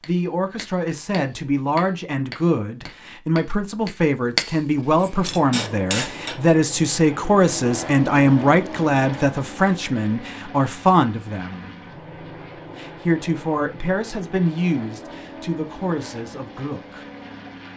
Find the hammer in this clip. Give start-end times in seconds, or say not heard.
0.0-6.4.